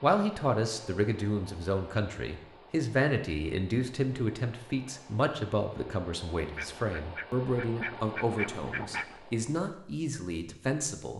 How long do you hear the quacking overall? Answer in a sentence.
The quacking can be heard for 3 seconds in total.